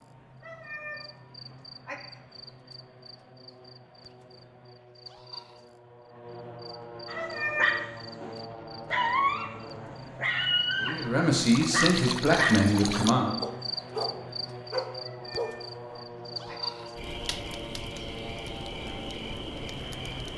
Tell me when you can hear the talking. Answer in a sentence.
The talking can be heard from 10.8 to 13.4 s.